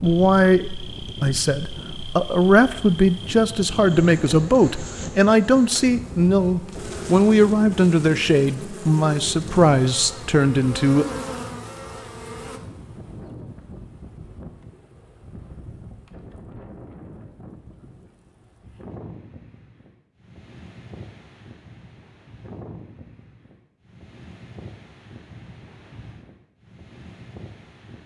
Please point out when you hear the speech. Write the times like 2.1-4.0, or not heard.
0.0-11.1.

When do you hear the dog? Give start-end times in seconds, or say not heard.
not heard.